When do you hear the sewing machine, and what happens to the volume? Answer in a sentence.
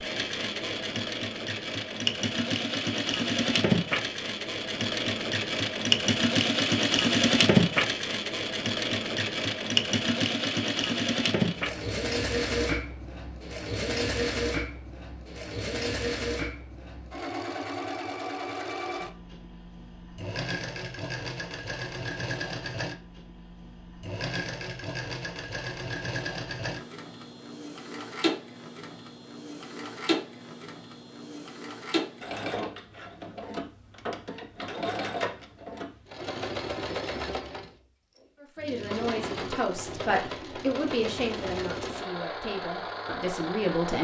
You can hear the sewing machine from 0.0 to 43.9 s, getting quieter.